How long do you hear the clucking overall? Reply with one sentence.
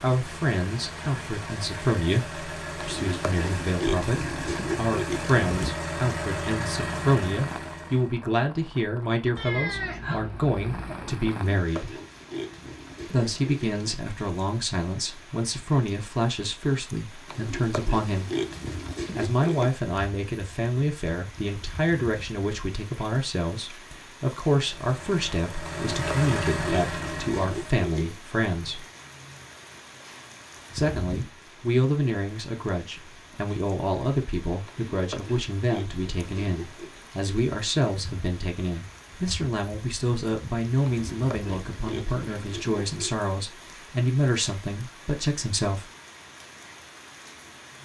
The clucking can't be heard in this clip.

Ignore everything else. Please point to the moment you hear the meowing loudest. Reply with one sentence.
The loudest moment of the meowing is at 10 seconds.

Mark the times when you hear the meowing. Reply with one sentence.
You can hear the meowing from 9.3 to 11.2 s.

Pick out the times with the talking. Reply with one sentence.
The talking can be heard from 0.0 to 11.9 s, from 13.1 to 18.3 s, from 19.1 to 28.9 s and from 30.8 to 45.9 s.